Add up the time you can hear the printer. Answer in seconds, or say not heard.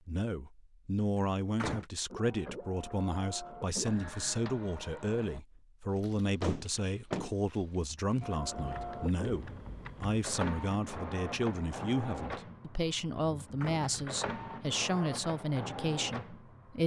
12 s.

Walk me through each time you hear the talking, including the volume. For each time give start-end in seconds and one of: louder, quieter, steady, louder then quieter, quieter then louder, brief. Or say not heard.
0.1-16.8 steady.